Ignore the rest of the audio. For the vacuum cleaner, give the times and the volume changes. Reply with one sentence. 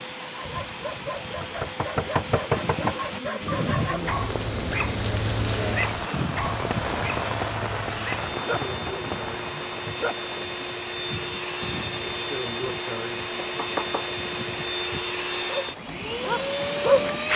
The vacuum cleaner can be heard from 0.0 to 17.3 s, getting louder.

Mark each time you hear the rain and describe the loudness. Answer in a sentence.
You can hear the rain from 0.0 to 17.3 s, getting louder then quieter.